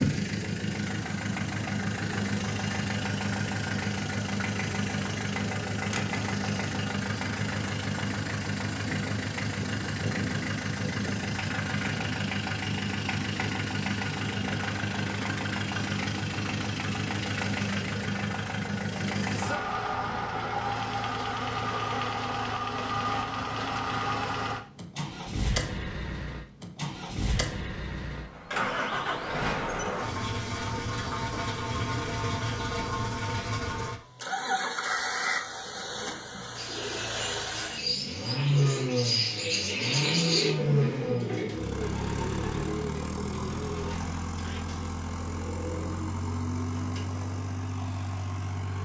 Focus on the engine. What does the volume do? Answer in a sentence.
The loudness of the engine stays about the same.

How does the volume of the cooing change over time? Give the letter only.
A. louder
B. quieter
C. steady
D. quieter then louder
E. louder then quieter
E.